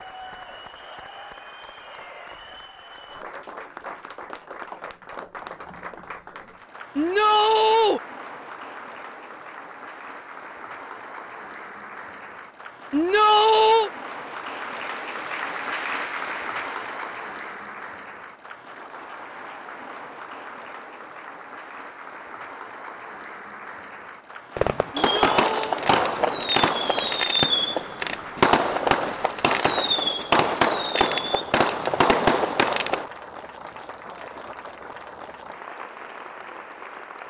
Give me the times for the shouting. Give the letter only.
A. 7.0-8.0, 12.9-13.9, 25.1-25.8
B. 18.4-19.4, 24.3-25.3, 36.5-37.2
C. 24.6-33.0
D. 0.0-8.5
A.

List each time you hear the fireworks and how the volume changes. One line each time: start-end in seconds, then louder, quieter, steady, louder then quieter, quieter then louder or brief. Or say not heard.
24.6-33.0 steady.